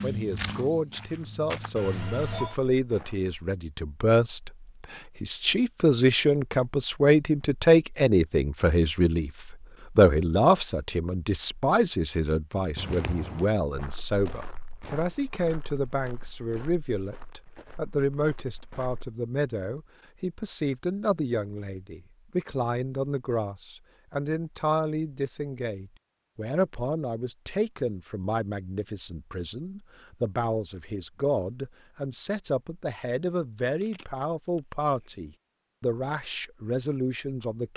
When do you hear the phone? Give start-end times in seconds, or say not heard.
1.8-2.5, 33.6-35.1.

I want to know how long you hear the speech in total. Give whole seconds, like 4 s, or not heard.
38 s.